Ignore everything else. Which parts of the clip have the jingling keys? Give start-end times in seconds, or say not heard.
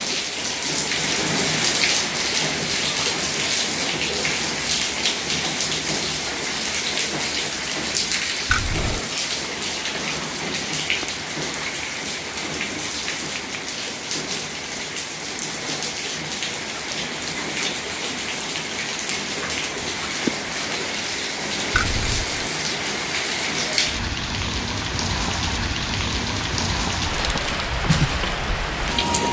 8.5-8.9, 21.8-22.4.